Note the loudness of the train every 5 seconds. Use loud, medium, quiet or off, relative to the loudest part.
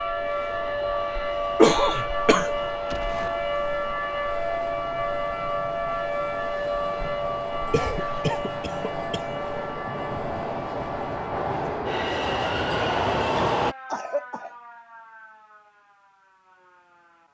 quiet, medium, loud, off.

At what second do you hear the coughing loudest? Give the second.
2 s.